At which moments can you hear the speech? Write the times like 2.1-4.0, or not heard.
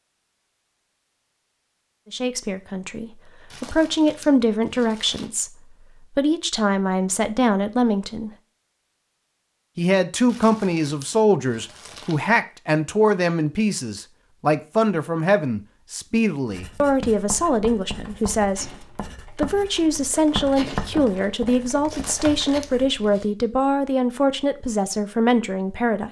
2.1-8.3, 9.8-18.8, 19.4-26.0.